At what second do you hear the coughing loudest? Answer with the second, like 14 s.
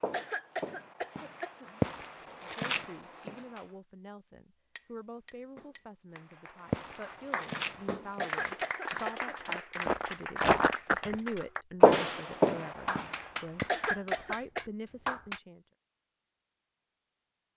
14 s.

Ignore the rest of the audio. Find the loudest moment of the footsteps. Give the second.
12 s.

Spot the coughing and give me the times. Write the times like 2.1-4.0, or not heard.
0.1-1.8, 8.2-9.5, 13.7-14.7.